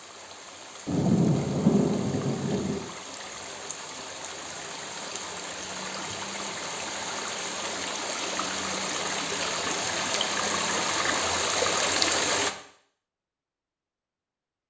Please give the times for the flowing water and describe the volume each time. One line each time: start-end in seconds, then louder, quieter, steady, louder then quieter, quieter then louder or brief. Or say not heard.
0.0-12.6 louder.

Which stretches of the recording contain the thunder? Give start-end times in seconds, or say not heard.
0.8-2.8.